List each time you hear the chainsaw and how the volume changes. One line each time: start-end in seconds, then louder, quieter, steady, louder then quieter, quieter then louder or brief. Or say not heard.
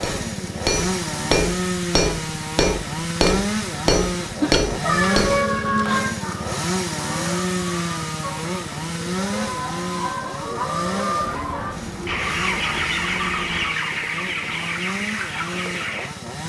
0.0-16.4 quieter.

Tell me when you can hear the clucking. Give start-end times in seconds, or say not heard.
6.2-16.1.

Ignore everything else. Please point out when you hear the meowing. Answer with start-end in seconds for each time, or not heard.
4.4-6.2, 11.2-13.8.